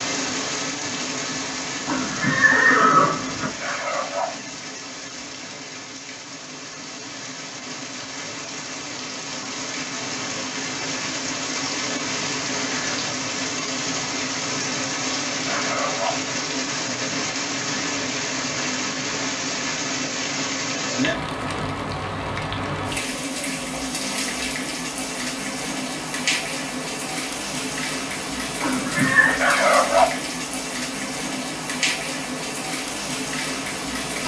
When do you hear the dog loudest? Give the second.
30 s.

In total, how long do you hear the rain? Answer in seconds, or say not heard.
34 s.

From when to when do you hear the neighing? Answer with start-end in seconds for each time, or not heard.
1.9-3.5, 28.6-29.4.